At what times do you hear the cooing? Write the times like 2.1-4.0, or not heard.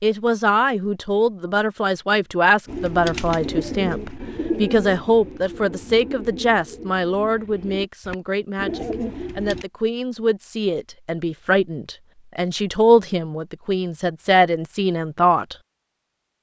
2.6-9.7.